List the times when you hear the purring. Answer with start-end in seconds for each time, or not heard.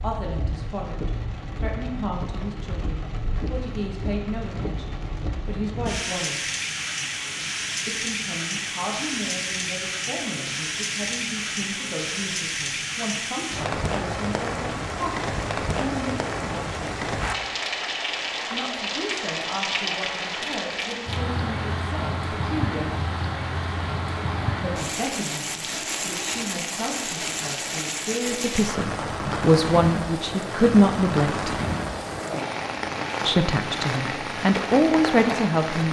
not heard.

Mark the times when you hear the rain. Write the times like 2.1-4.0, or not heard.
0.0-35.8.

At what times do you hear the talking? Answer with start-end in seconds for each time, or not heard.
0.0-6.5, 7.8-16.8, 18.5-23.0, 24.6-31.6, 33.2-35.8.